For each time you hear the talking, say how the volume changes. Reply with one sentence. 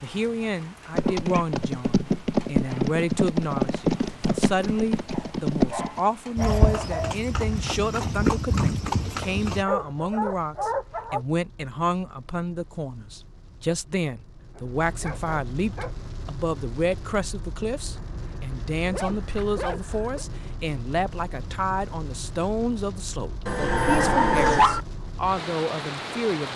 The talking can be heard from 0.0 to 26.5 s, at a steady volume.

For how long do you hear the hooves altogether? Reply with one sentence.
The hooves can be heard for 9 seconds in total.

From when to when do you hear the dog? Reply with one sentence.
The dog can be heard from 1.0 to 1.4 s, from 5.1 to 7.2 s, from 9.6 to 11.2 s, from 14.6 to 15.9 s, from 17.9 to 20.2 s and from 23.4 to 24.9 s.